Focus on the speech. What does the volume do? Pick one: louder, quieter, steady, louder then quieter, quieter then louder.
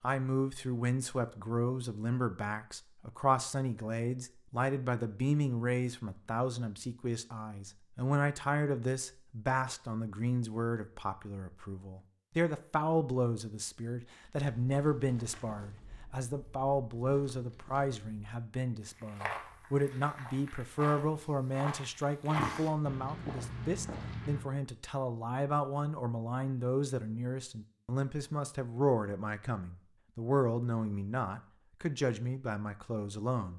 steady.